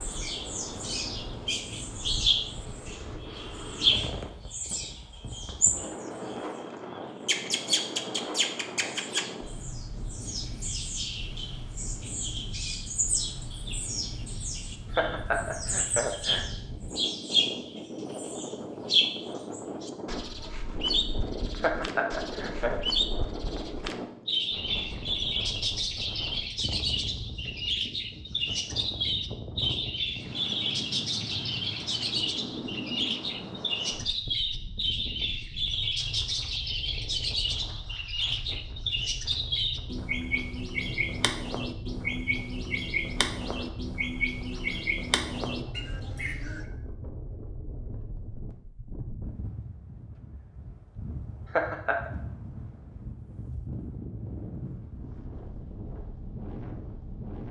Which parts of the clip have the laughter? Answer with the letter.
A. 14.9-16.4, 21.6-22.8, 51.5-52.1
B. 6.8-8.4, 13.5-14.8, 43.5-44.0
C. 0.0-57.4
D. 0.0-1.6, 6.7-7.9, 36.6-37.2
A.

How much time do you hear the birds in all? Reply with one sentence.
You can hear the birds for 46 seconds altogether.